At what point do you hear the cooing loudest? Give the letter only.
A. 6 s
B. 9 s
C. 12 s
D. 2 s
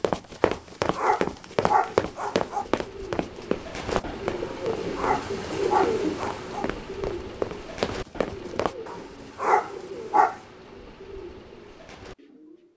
A.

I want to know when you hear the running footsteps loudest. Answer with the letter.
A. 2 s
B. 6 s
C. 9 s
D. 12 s
A.